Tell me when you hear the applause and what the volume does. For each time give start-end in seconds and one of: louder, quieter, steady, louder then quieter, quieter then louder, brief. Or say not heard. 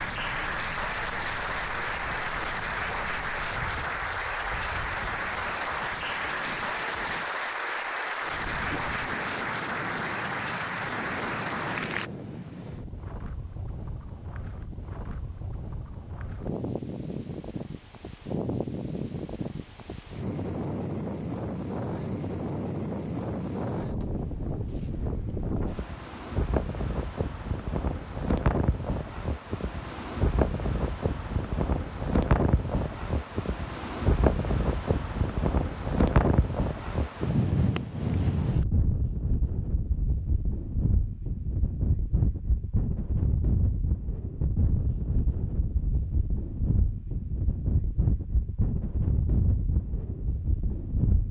0.0-12.1 steady.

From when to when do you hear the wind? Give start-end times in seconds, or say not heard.
0.0-51.2.